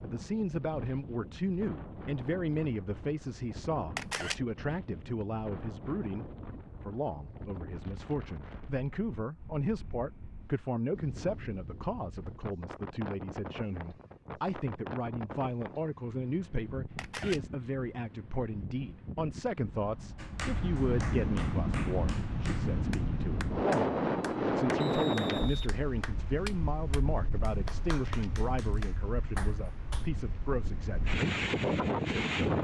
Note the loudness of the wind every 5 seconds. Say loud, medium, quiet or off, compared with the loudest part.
quiet, quiet, quiet, quiet, loud, medium, loud.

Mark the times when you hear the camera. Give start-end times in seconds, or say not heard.
4.0-4.4, 16.9-17.4, 27.9-28.3.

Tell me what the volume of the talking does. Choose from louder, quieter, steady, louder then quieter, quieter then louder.
steady.